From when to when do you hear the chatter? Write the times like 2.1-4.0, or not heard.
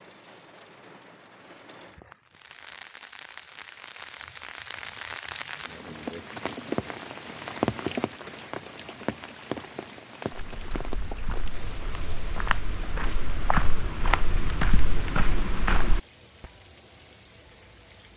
not heard.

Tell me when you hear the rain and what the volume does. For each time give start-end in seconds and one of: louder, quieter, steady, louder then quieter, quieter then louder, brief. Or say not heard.
0.0-18.1 louder then quieter.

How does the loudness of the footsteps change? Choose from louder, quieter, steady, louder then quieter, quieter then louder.
louder.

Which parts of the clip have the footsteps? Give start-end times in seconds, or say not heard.
10.3-16.0.